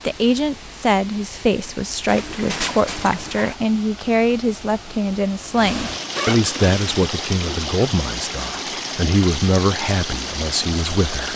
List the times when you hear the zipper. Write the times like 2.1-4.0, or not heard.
2.0-3.5, 6.2-7.1.